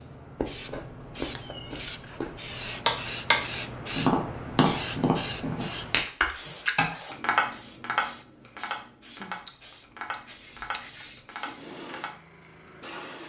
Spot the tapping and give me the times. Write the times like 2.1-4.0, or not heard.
2.9-3.4, 4.0-12.7.